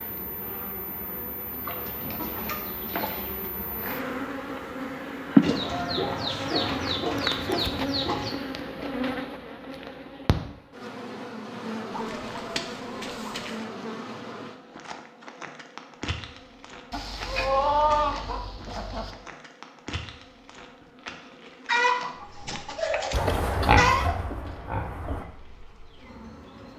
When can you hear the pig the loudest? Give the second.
24 s.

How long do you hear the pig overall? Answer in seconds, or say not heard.
2 s.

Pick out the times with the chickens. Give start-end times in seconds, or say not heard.
1.6-3.5, 5.4-8.3, 11.9-13.6, 16.9-19.1, 21.6-24.1.